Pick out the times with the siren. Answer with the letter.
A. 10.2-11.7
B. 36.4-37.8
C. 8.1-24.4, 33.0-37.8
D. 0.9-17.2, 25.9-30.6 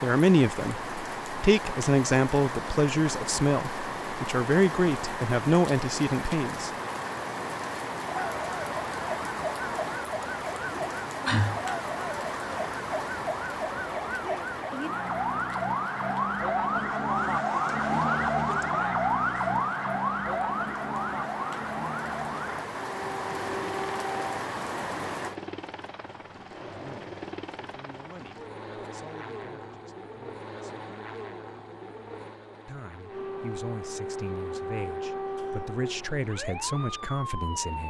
C.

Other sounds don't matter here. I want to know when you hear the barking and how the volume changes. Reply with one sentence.
The barking can't be heard in this clip.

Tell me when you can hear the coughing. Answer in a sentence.
You can hear the coughing from 10.2 to 11.7 s.